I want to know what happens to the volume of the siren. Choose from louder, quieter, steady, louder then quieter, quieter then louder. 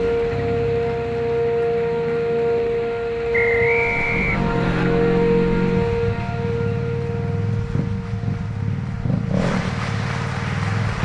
quieter.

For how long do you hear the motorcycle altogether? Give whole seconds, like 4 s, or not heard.
11 s.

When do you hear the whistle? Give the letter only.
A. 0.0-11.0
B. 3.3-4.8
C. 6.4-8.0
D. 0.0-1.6
B.